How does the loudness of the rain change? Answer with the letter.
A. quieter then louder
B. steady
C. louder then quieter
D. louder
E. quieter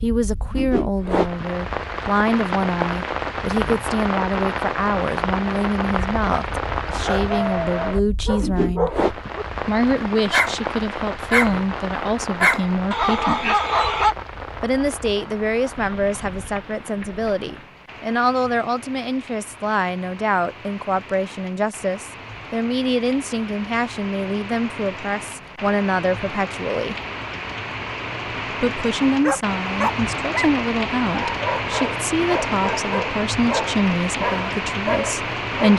A.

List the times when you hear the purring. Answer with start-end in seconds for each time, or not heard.
not heard.